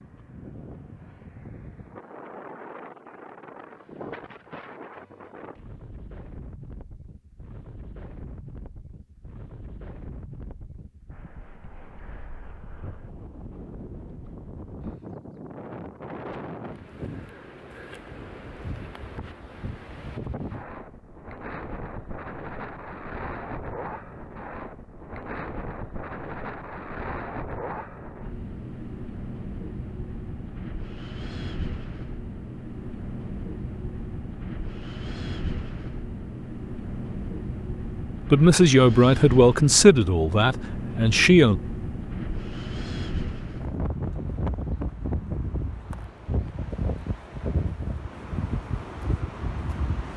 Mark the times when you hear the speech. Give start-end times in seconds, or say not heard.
38.3-41.6.